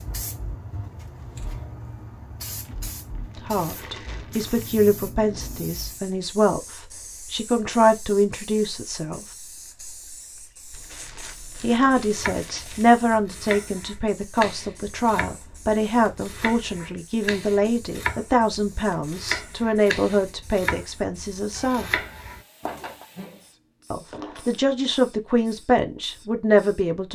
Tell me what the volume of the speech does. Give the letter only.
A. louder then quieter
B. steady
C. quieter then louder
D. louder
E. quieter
B.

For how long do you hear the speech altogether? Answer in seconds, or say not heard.
19 s.